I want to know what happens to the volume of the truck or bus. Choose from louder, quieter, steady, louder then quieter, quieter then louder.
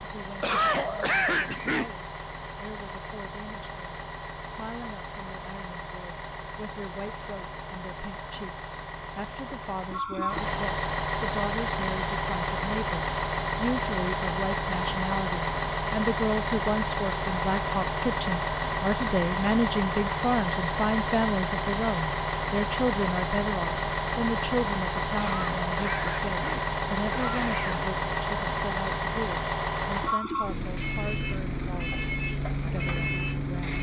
louder.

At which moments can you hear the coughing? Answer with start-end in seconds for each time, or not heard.
0.4-1.9, 25.1-27.9.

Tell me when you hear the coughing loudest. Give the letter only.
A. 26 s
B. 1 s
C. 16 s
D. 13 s
B.